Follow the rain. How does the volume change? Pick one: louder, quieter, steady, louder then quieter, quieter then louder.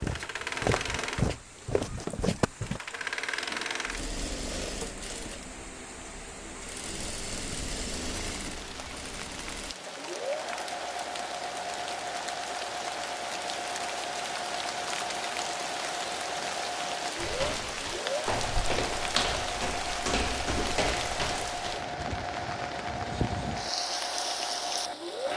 louder.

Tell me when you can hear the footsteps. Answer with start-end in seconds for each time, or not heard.
0.0-2.8, 17.1-21.8.